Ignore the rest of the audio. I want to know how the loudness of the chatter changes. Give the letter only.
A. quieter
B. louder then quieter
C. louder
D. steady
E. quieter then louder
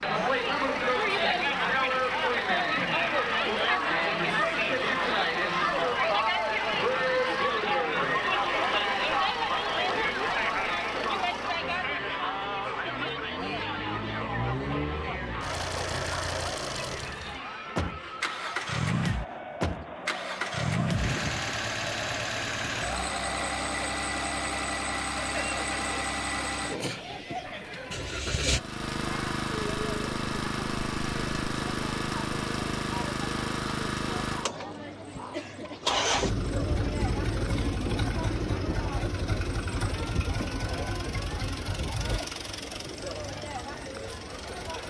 A.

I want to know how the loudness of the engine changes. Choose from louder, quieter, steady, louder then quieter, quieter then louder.
louder.